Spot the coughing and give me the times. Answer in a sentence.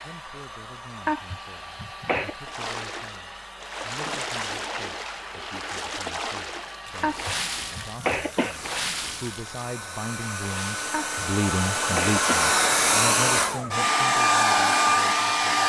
You can hear the coughing from 1.1 to 2.4 s, from 7.0 to 8.6 s and from 10.9 to 12.5 s.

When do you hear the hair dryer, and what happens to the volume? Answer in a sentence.
The hair dryer can be heard from 0.0 to 15.6 s, getting louder.